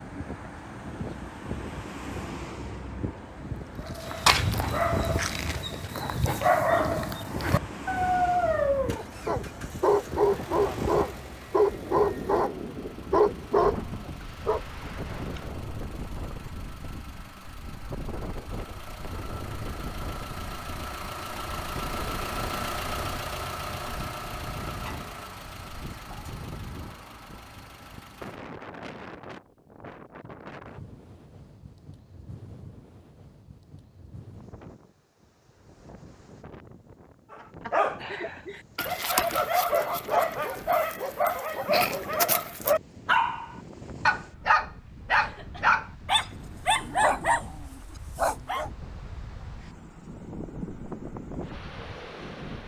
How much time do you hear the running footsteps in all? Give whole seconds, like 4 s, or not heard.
not heard.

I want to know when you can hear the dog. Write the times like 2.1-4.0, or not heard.
3.6-14.6, 37.3-48.7.